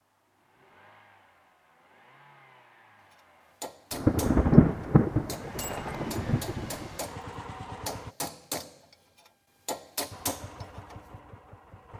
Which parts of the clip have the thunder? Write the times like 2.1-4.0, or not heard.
3.9-7.0.